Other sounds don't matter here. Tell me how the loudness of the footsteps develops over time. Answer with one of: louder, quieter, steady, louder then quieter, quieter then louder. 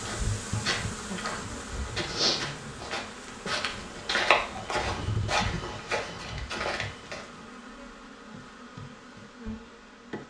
louder then quieter.